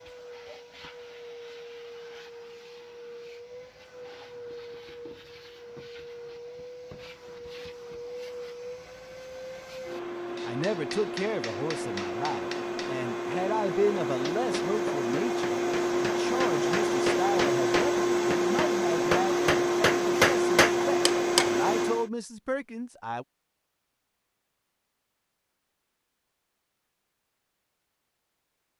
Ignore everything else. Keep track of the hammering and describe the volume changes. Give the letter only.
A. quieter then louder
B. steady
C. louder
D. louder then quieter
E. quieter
C.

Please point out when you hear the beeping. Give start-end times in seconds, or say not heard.
not heard.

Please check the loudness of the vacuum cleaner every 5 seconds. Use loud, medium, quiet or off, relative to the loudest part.
quiet, quiet, medium, loud, loud, off.